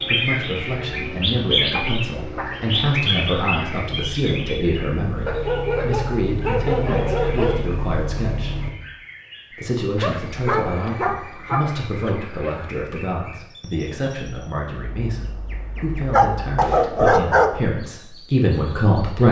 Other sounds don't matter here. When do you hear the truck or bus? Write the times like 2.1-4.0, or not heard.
0.0-8.8.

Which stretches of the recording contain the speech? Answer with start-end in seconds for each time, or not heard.
0.0-8.6, 9.5-19.2.